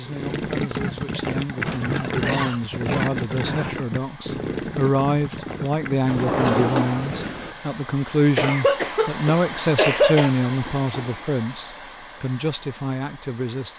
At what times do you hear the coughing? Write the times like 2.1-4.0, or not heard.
1.7-3.8, 8.3-10.3.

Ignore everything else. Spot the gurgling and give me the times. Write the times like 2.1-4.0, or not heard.
0.1-7.6.